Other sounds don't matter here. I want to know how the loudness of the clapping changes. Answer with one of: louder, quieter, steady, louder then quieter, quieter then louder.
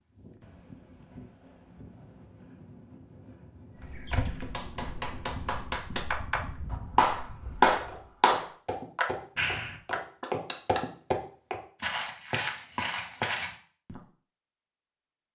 louder then quieter.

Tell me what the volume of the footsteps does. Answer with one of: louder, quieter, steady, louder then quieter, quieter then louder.
quieter then louder.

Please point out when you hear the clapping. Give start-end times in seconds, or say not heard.
4.5-10.8.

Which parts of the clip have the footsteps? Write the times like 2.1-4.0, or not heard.
3.8-14.0.